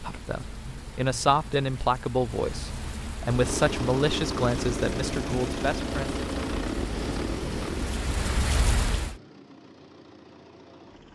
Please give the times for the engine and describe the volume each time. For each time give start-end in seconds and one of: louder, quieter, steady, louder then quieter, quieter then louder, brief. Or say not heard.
3.2-11.1 quieter.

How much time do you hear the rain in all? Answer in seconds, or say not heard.
9 s.